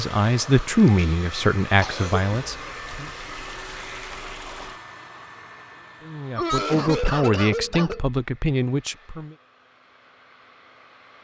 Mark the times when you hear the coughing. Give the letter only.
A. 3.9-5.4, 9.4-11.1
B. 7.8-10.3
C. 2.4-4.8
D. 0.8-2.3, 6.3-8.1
D.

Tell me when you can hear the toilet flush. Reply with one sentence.
You can hear the toilet flush from 2.4 to 4.8 s.